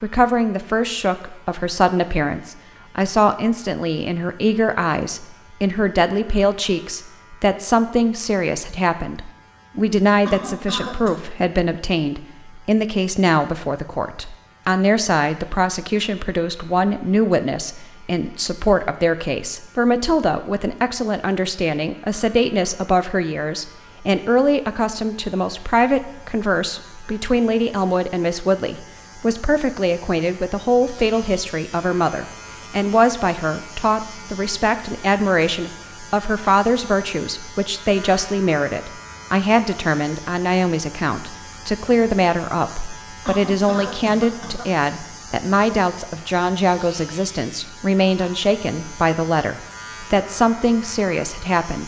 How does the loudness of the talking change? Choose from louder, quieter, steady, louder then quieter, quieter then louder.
steady.